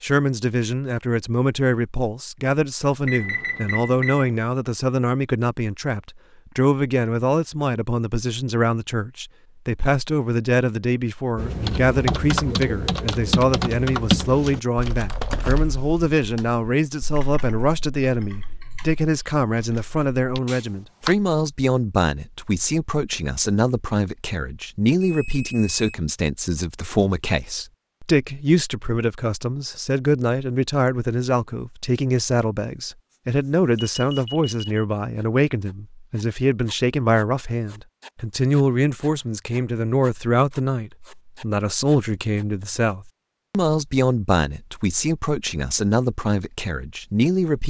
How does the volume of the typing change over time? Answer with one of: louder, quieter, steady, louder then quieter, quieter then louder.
quieter.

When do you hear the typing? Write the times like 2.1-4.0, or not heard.
11.3-21.1.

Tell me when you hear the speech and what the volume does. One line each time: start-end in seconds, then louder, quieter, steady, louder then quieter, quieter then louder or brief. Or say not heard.
0.0-47.6 steady.